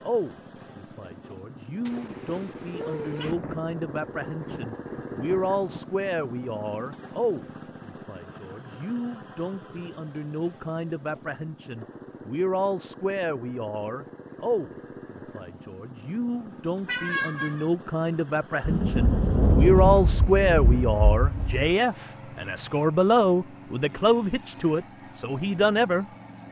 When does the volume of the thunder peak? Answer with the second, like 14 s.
20 s.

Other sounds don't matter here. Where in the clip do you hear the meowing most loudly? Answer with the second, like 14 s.
17 s.